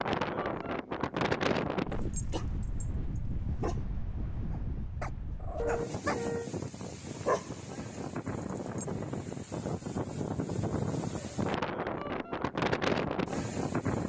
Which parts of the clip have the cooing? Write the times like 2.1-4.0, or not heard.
not heard.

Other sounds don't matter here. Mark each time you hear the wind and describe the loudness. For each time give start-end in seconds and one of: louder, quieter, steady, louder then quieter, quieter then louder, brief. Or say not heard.
0.0-14.0 quieter then louder.